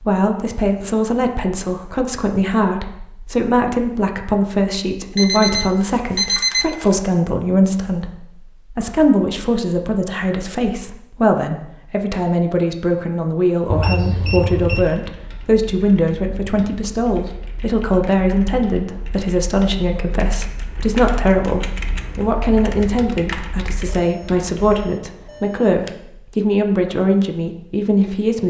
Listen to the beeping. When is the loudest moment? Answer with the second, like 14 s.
6 s.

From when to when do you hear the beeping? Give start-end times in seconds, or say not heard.
5.2-7.0, 13.7-14.8, 23.9-25.9.